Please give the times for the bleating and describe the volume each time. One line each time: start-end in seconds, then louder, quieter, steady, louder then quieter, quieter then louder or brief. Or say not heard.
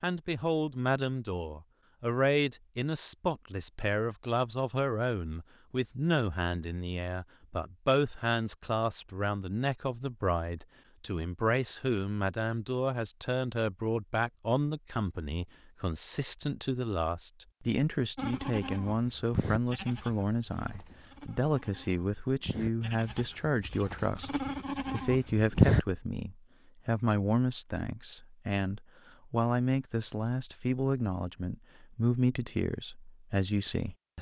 18.1-25.8 quieter then louder.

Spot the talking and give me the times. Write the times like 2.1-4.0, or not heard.
0.0-34.1.